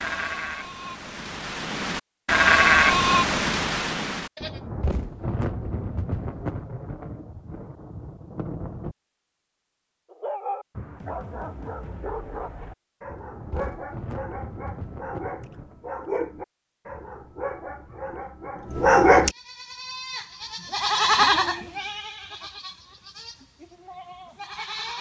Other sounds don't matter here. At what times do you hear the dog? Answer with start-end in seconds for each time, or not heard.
10.1-19.3.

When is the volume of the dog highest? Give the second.
19 s.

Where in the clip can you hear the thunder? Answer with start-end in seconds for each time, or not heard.
4.4-8.9, 13.1-15.8.